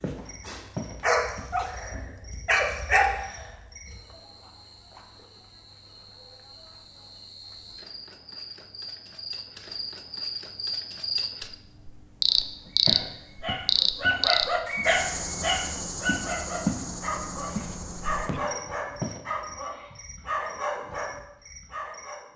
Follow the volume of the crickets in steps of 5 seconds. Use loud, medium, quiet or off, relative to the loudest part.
quiet, quiet, loud, medium, quiet.